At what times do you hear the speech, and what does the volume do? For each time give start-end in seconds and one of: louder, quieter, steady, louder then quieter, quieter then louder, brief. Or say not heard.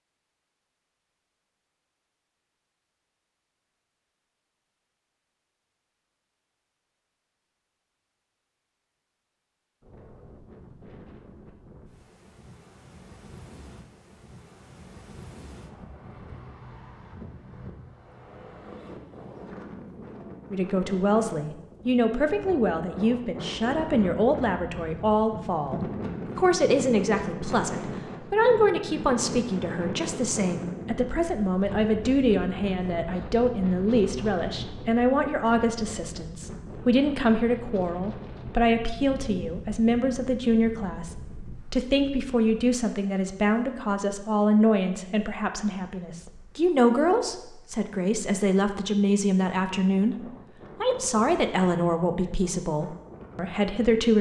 20.5-54.1 steady.